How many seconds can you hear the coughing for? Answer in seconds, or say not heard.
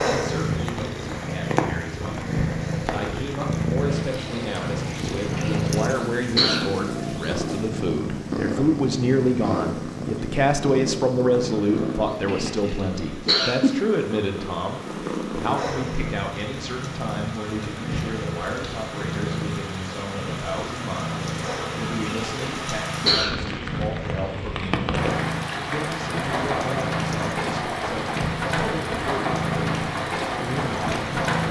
4 s.